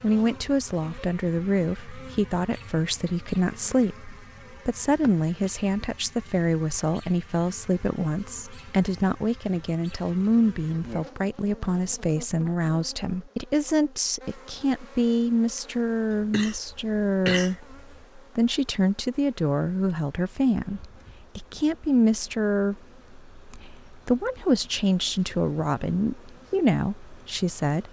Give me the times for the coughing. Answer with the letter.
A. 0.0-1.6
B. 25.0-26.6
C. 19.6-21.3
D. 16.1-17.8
D.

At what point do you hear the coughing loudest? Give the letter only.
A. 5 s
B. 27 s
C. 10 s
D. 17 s
D.